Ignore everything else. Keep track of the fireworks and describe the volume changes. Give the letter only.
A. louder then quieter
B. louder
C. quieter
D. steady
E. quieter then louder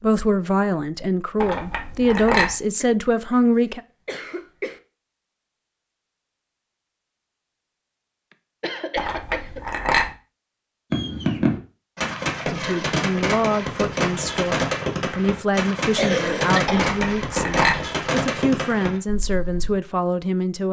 D.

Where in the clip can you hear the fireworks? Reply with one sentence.
You can hear the fireworks from 10.9 to 19.8 s.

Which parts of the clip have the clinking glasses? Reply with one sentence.
You can hear the clinking glasses from 1.4 to 2.5 s, from 8.9 to 10.1 s and from 16.6 to 17.8 s.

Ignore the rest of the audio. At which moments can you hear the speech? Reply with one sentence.
You can hear the speech from 0.0 to 3.8 s and from 12.5 to 20.6 s.